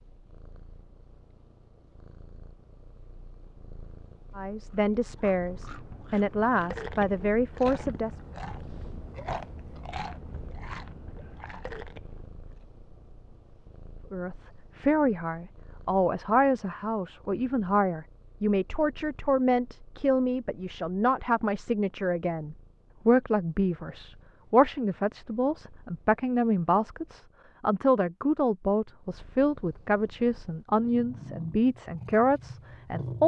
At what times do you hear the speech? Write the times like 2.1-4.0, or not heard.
4.3-8.2, 14.1-33.2.